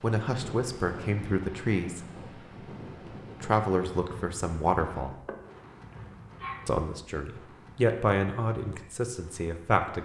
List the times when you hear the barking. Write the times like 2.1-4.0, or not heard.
5.2-6.7.